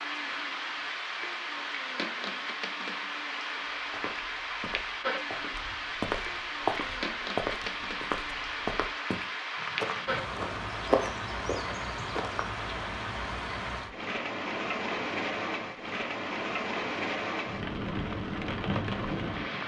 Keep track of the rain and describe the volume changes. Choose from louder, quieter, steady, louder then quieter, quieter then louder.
steady.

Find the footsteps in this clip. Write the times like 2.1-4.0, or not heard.
3.8-12.7.